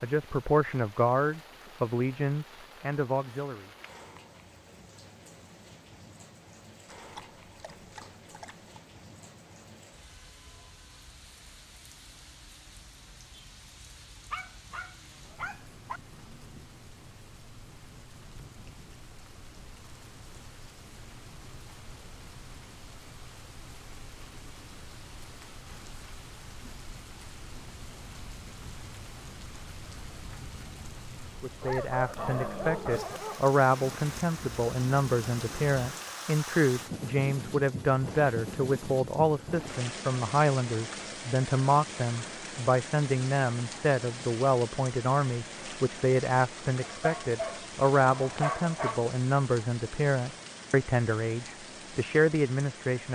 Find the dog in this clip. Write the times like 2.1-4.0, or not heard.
7.0-8.8, 14.3-16.0, 31.6-33.5, 46.8-49.0.